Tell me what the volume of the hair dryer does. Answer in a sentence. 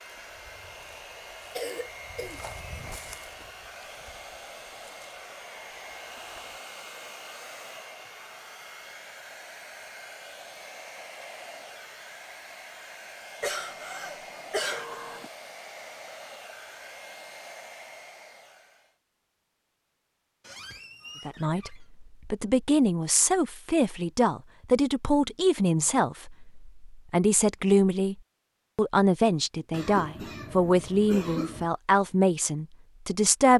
The loudness of the hair dryer stays about the same.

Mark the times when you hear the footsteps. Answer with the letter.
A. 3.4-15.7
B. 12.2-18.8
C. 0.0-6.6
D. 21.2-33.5
C.